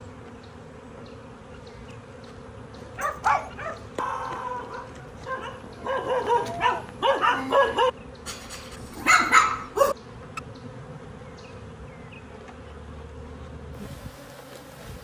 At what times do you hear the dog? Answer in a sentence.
The dog can be heard from 3.0 to 10.4 s.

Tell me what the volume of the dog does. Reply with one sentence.
The loudness of the dog goes up.